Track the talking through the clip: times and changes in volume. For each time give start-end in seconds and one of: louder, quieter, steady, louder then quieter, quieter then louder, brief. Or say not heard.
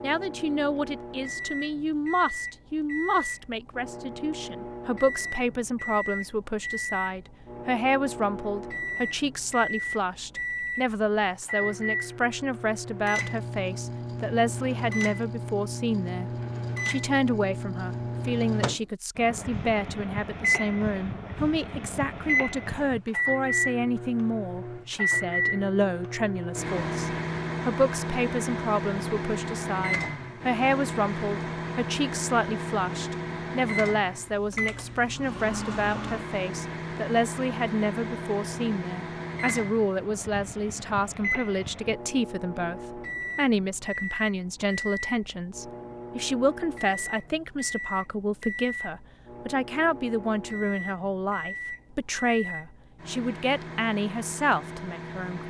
0.0-55.4 steady.